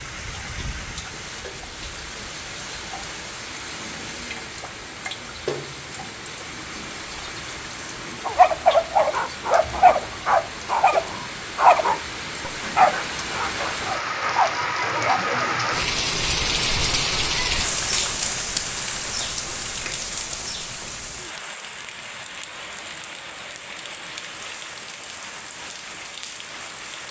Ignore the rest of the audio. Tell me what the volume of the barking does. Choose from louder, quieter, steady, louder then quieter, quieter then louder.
quieter.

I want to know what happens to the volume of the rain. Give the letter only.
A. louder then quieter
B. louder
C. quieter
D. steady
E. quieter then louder
A.